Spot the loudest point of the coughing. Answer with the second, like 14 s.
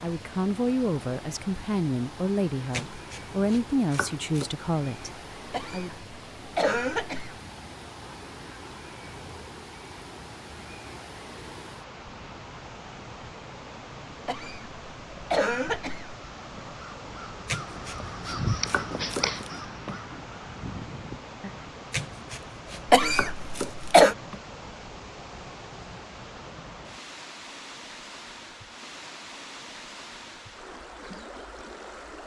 24 s.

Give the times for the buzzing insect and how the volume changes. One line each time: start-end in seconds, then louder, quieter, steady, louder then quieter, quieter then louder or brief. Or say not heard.
not heard.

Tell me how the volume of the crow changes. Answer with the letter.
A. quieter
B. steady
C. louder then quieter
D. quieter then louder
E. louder
C.